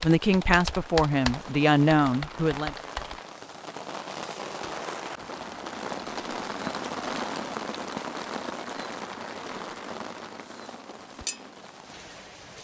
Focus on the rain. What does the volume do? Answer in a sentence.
The volume of the rain goes up, then down.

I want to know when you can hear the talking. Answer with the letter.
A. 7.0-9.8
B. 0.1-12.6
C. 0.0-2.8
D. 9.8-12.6
C.